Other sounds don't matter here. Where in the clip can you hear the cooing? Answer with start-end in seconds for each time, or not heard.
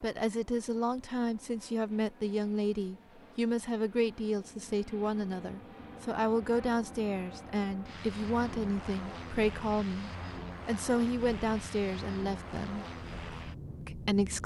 not heard.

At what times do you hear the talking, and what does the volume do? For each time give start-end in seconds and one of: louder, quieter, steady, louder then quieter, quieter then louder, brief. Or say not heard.
0.0-12.8 steady
13.8-14.4 brief.